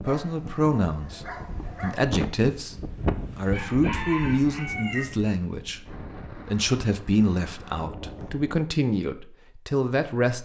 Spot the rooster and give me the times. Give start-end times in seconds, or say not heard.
3.5-5.0.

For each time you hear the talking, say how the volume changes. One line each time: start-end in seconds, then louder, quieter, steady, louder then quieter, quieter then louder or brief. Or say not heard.
0.0-10.3 steady.